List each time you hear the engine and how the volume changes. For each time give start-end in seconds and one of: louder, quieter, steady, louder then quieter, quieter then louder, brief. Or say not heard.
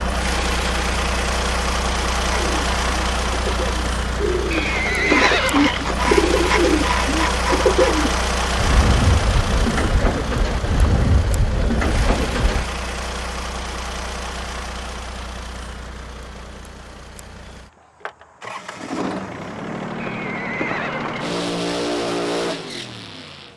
0.0-23.5 quieter then louder.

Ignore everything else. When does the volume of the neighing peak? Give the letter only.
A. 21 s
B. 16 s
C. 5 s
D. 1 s
C.